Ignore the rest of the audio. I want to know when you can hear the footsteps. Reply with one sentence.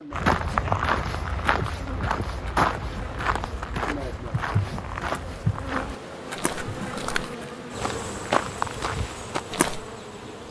You can hear the footsteps from 0.1 to 9.8 s.